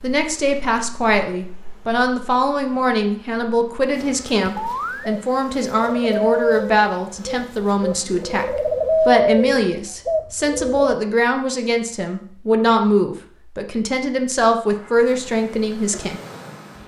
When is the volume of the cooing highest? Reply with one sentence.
The loudest moment of the cooing is at 9 seconds.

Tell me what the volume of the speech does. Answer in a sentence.
The volume of the speech stays about the same.